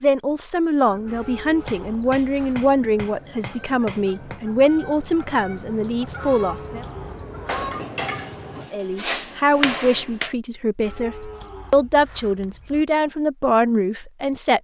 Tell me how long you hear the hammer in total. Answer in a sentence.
You can hear the hammer for 6 seconds altogether.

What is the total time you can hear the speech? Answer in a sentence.
You can hear the speech for 13 seconds altogether.